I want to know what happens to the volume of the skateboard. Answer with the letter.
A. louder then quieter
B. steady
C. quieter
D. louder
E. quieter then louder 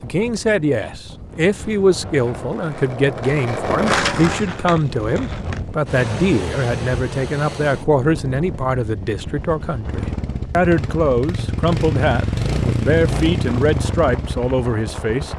A.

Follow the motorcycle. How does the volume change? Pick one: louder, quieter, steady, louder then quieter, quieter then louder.
louder then quieter.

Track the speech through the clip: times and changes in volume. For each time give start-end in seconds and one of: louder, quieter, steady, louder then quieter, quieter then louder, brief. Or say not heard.
0.0-15.3 steady.